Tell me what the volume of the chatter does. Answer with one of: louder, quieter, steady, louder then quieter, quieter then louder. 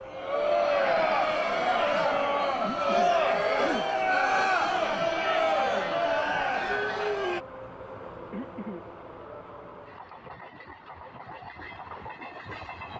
steady.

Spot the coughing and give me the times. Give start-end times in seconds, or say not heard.
2.6-3.9, 8.3-8.8.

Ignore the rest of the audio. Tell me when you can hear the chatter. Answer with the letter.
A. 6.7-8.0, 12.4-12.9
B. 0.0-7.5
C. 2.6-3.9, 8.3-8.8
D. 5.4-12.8
B.